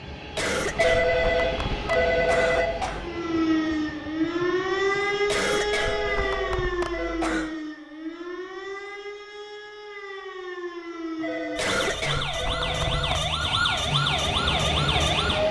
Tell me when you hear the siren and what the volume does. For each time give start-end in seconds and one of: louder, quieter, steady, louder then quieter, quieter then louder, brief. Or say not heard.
2.9-15.4 quieter then louder.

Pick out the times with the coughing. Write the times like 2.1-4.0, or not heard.
0.3-3.1, 5.2-7.5, 11.6-13.3.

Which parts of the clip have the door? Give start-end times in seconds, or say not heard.
not heard.